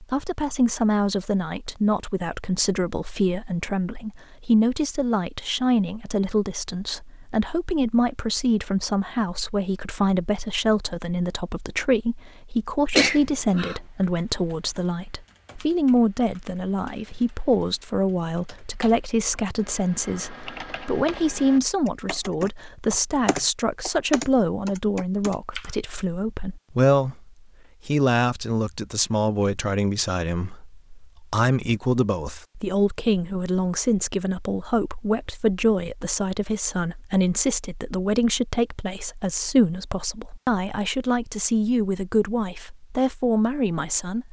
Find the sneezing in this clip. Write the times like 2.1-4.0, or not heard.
12.9-13.8.